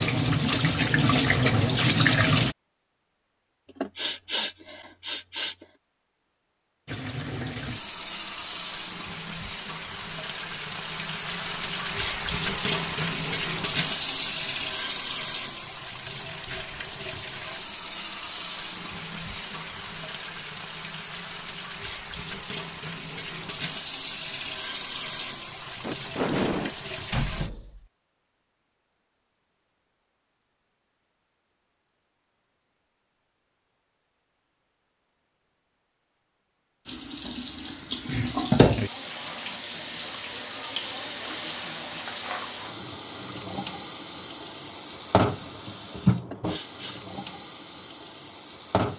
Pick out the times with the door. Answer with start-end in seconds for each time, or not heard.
27.1-27.9.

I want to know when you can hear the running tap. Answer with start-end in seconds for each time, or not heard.
0.0-2.5, 6.8-27.6, 36.9-48.9.